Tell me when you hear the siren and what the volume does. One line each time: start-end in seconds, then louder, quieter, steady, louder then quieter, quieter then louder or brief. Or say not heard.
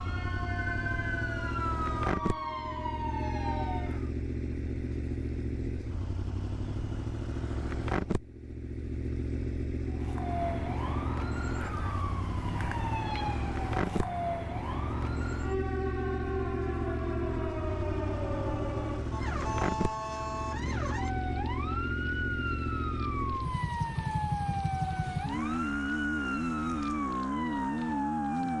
0.0-4.1 steady
9.8-28.5 steady.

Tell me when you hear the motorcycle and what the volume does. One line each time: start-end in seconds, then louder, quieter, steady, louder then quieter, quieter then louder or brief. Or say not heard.
0.0-28.5 steady.